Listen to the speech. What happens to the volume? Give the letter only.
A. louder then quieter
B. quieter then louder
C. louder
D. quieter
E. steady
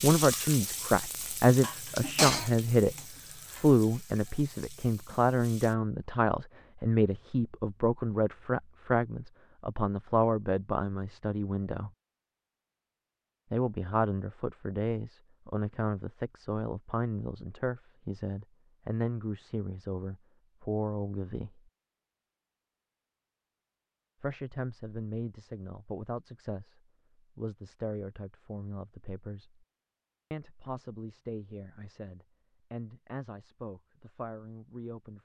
D.